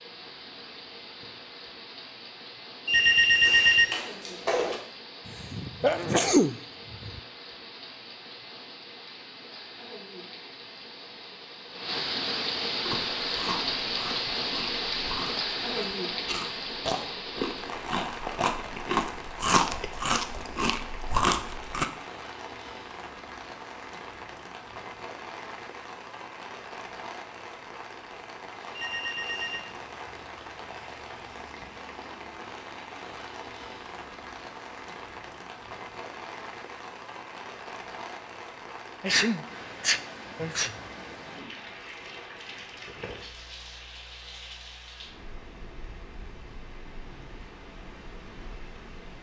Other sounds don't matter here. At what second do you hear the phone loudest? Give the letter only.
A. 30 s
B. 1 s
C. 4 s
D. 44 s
C.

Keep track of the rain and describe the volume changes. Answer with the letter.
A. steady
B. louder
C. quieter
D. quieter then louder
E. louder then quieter
E.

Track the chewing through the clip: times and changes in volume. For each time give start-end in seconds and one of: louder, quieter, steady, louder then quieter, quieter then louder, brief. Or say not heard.
12.8-21.9 louder.